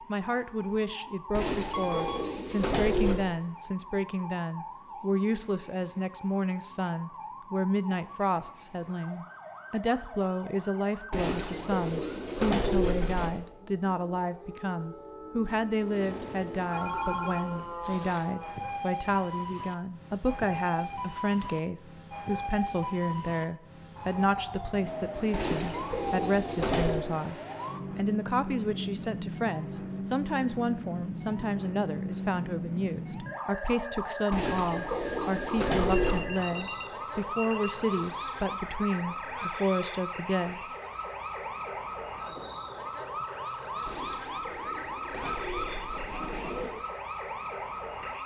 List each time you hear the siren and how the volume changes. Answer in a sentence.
You can hear the siren from 0.0 to 48.2 s, getting louder.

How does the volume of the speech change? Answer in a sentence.
The volume of the speech stays about the same.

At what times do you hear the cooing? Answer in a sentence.
You can hear the cooing from 1.3 to 3.2 s, from 11.1 to 13.3 s, from 25.3 to 27.0 s, from 34.3 to 36.2 s and from 43.9 to 46.7 s.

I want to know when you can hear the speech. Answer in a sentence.
You can hear the speech from 0.1 to 40.6 s.